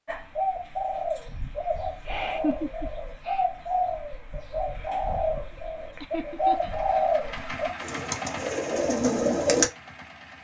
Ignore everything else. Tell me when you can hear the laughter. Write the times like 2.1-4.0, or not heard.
2.0-3.5, 6.0-7.0.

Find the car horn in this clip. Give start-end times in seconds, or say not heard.
not heard.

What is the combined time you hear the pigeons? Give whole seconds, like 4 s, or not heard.
10 s.